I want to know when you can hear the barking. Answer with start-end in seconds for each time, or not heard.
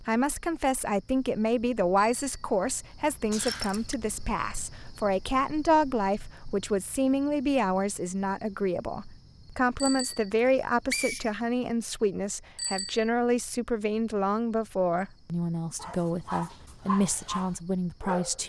15.8-18.4.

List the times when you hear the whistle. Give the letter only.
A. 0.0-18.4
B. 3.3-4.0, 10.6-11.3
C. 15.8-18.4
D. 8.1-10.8
B.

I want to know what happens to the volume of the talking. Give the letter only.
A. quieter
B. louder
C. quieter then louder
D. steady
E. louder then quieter
D.